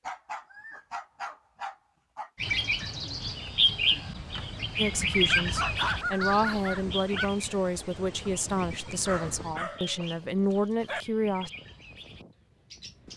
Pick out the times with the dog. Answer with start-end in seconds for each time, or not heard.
0.1-2.3, 5.2-7.2, 9.1-11.1.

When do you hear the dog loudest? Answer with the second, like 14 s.
6 s.